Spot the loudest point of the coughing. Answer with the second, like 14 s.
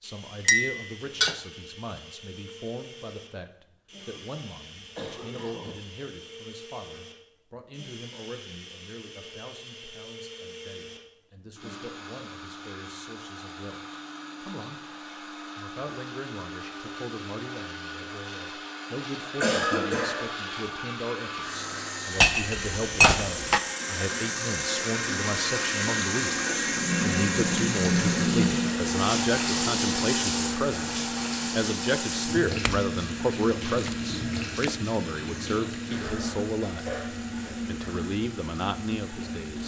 20 s.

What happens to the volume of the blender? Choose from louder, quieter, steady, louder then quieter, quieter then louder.
louder then quieter.